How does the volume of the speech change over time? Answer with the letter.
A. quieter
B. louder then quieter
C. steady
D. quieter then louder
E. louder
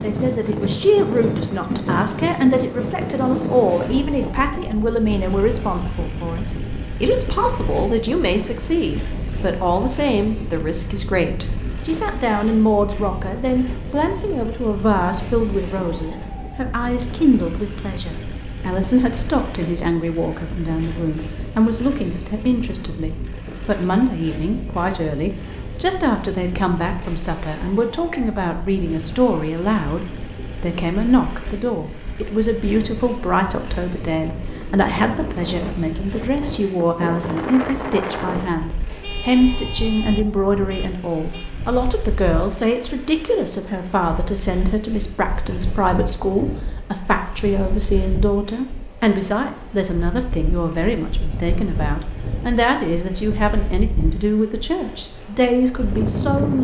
C.